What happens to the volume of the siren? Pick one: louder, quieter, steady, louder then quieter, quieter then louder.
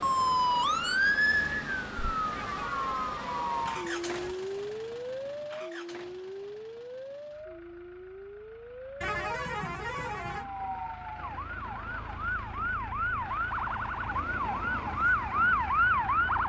quieter then louder.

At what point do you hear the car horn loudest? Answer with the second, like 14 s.
9 s.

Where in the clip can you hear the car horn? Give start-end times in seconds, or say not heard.
2.3-4.3, 9.0-10.4.